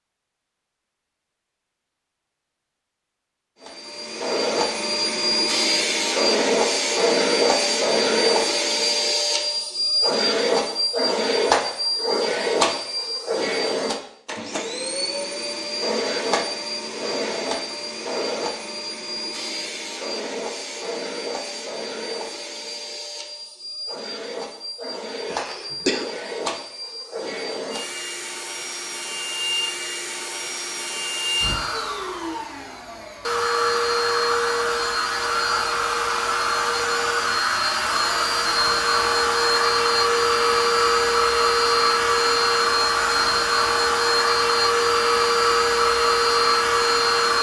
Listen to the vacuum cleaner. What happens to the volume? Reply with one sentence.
The volume of the vacuum cleaner goes down, then up.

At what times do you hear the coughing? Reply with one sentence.
You can hear the coughing from 25.2 to 26.1 s.